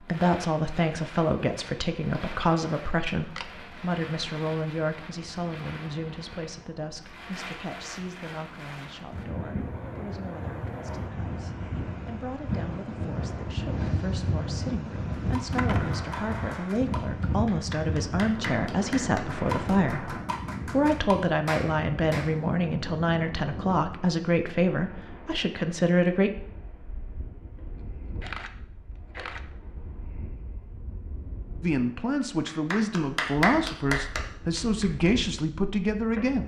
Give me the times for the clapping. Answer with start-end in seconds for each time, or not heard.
15.2-22.3, 32.5-35.1.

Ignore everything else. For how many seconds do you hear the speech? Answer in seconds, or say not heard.
31 s.